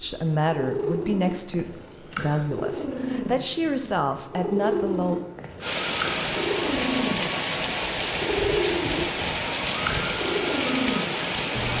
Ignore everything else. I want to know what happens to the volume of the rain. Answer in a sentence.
The loudness of the rain stays about the same.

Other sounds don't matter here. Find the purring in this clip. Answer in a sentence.
You can hear the purring from 0.0 to 11.7 s.